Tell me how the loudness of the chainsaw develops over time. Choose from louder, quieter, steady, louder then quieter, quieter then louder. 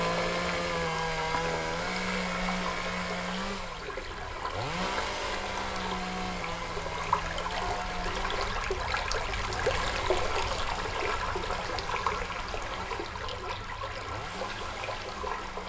quieter.